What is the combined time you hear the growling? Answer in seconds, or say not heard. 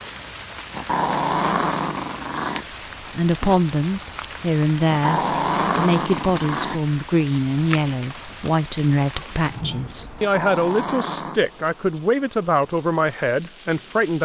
5 s.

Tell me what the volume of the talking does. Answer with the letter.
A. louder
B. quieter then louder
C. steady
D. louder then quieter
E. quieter
C.